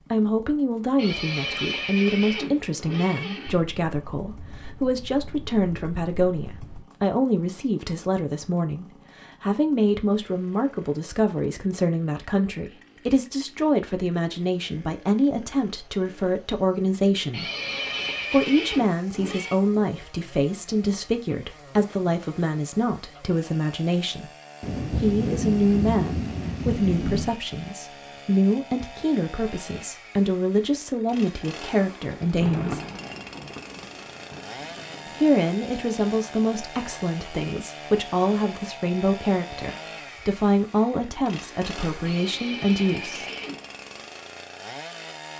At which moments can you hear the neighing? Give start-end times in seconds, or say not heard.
0.9-3.6, 17.3-19.6, 42.0-43.7.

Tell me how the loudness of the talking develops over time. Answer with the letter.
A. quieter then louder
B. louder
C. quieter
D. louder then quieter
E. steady
E.